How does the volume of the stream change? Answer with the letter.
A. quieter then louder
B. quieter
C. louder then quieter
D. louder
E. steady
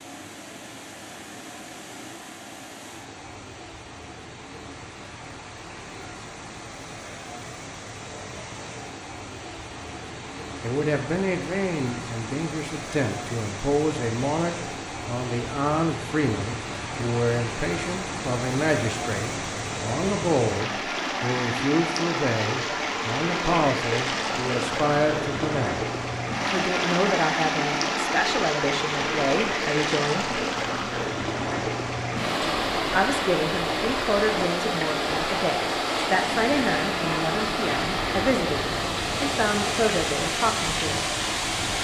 D.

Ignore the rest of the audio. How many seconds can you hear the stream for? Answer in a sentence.
You can hear the stream for 42 seconds altogether.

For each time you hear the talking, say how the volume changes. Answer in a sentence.
You can hear the talking from 10.6 to 30.4 s, at a steady volume; and from 32.9 to 41.1 s, at a steady volume.